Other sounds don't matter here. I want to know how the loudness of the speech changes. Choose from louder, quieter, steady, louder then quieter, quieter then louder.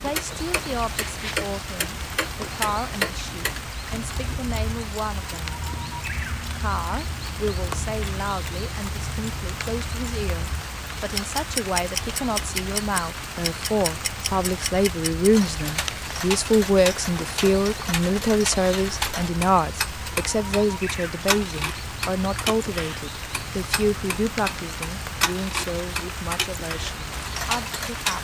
louder then quieter.